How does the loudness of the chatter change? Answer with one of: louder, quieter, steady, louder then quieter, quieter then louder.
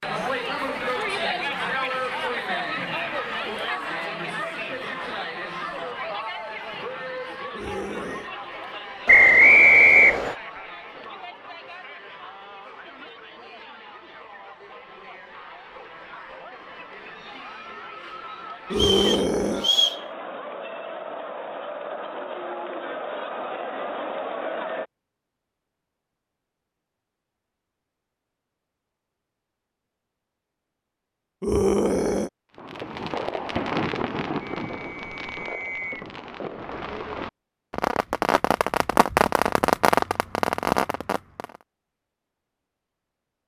quieter then louder.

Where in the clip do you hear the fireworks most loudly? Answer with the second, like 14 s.
40 s.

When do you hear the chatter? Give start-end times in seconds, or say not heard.
0.0-24.9.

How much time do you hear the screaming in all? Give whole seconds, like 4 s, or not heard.
3 s.